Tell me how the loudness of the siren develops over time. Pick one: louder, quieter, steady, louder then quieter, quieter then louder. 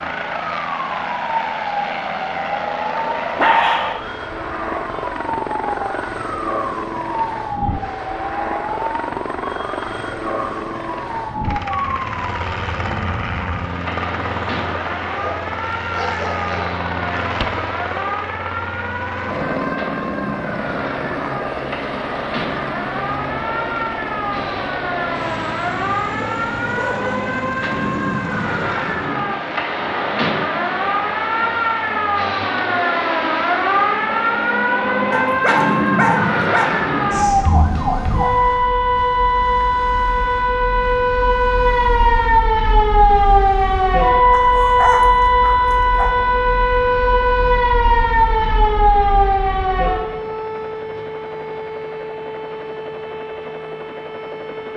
louder.